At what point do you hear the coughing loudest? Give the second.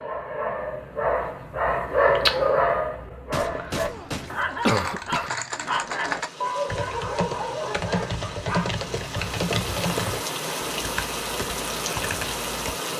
5 s.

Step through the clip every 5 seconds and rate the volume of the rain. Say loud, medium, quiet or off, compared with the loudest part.
off, medium, loud.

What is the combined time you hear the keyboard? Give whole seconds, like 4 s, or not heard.
8 s.